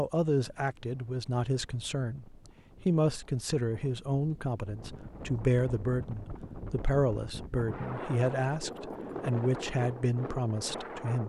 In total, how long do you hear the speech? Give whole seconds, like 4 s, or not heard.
11 s.